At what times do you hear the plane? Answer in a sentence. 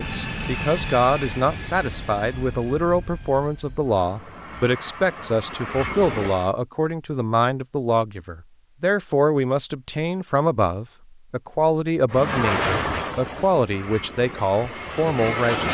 The plane can be heard from 0.0 to 6.5 s and from 12.1 to 15.6 s.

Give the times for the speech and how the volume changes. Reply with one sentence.
The speech can be heard from 0.0 to 15.6 s, at a steady volume.